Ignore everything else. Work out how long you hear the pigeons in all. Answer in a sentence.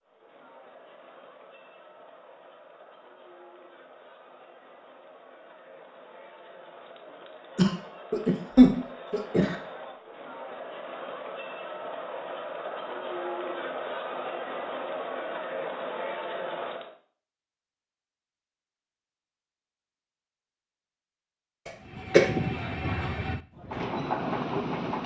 The pigeons can't be heard in this clip.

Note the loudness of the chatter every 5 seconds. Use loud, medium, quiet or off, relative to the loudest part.
quiet, medium, loud, loud, off.